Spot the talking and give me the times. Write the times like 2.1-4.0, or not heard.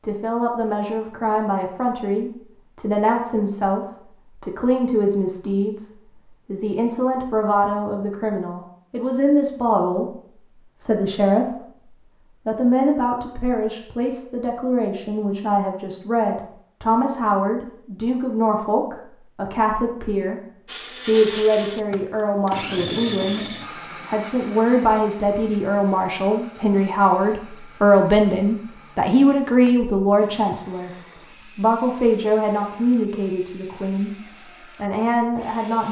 0.0-10.1, 10.8-11.8, 12.4-20.4, 21.1-23.4, 24.1-30.9, 31.6-35.8.